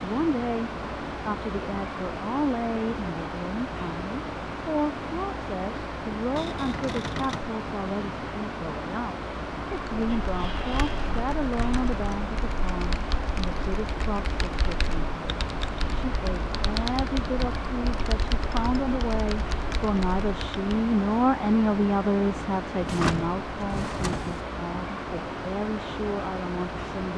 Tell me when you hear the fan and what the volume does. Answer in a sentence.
The fan can be heard from 0.0 to 27.1 s, at a steady volume.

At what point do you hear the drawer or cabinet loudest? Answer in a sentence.
The volume of the drawer or cabinet peaks at 23 seconds.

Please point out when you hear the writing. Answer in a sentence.
You can't hear the writing here.